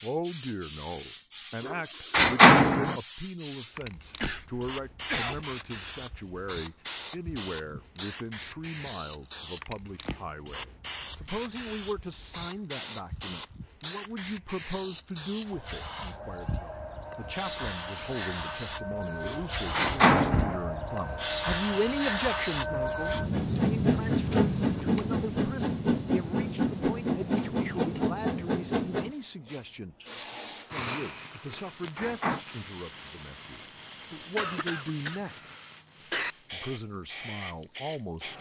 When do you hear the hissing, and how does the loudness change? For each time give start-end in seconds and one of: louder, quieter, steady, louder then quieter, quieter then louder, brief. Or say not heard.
0.0-38.3 louder then quieter.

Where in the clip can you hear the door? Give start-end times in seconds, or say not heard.
1.6-3.0, 19.2-20.6, 31.4-32.4.